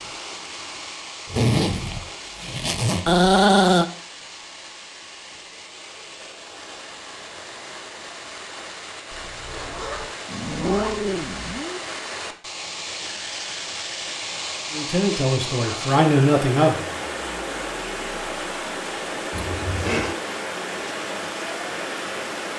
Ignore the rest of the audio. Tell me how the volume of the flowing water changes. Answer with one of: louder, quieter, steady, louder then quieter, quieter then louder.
louder.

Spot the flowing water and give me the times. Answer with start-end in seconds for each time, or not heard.
0.0-22.5.